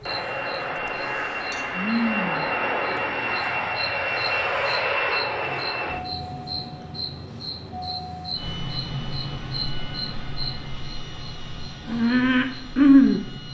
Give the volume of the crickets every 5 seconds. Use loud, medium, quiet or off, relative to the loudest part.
quiet, quiet, loud.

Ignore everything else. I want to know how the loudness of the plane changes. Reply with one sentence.
The loudness of the plane goes down.